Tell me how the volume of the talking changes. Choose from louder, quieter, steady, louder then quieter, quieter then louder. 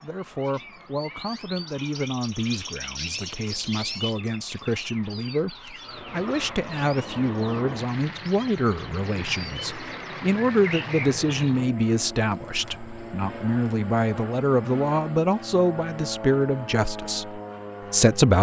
louder.